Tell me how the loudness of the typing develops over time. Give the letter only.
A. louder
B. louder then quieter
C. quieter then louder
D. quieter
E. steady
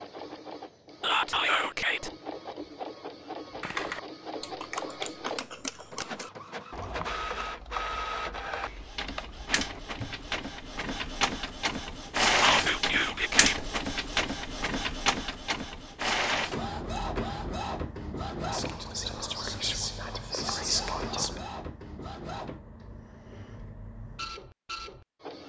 D.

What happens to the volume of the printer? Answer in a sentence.
The loudness of the printer goes up, then down.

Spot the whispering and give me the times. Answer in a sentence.
The whispering can be heard from 1.0 to 2.1 s, from 12.4 to 13.7 s and from 18.5 to 21.4 s.